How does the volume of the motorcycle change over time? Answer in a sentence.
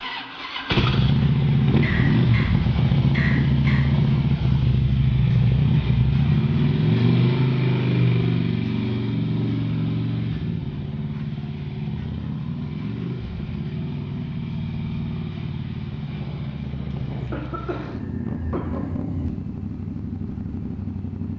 The loudness of the motorcycle goes down.